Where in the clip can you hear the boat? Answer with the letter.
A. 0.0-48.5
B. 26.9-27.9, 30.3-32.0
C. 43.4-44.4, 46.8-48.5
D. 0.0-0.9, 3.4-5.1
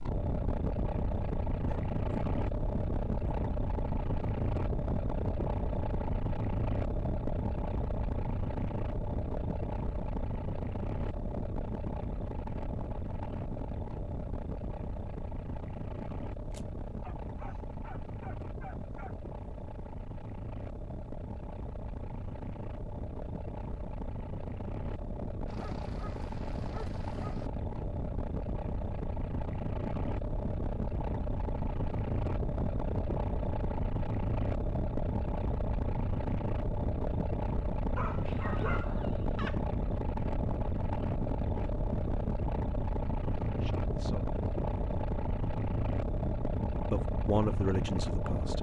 A.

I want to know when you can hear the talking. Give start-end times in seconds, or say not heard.
43.4-44.4, 46.8-48.5.